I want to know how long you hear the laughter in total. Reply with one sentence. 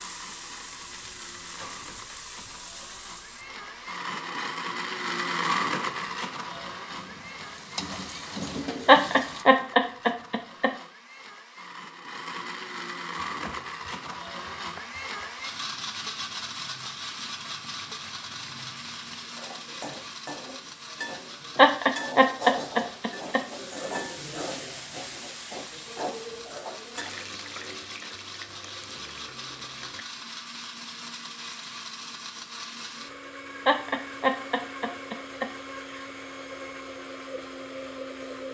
You can hear the laughter for 6 seconds altogether.